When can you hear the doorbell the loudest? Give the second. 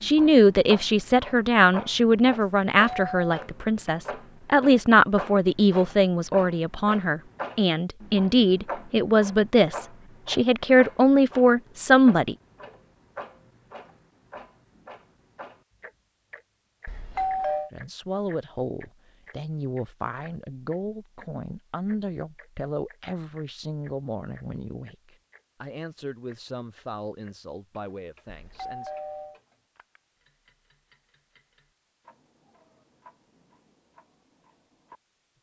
17 s.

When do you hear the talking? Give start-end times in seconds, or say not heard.
0.0-12.3, 17.7-28.9.